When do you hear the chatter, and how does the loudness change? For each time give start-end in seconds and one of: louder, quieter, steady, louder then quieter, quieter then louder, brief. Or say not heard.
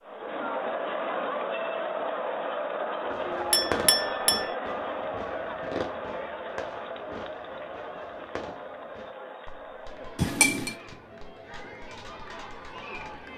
0.0-13.3 quieter.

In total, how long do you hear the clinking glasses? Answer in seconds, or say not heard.
2 s.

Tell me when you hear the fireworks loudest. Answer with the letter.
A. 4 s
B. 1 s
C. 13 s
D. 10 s
A.